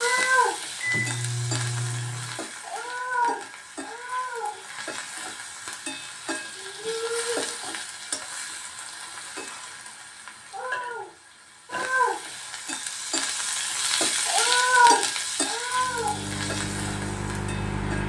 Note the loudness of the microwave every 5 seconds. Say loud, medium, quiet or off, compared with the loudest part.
loud, off, off, loud.